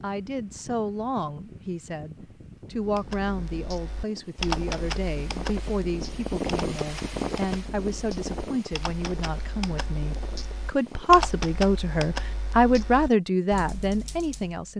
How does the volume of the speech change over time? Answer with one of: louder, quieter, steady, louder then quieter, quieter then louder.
louder.